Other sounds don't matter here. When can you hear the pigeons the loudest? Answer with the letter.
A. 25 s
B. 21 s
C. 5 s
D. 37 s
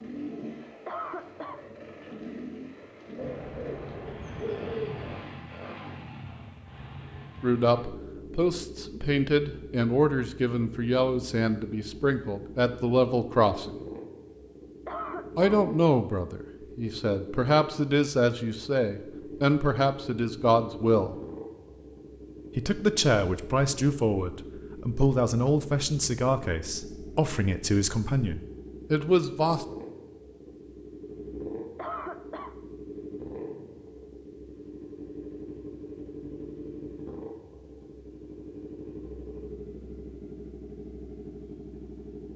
C.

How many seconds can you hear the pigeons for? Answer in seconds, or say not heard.
2 s.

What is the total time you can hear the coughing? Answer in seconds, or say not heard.
2 s.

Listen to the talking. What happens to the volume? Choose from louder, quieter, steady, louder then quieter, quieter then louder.
steady.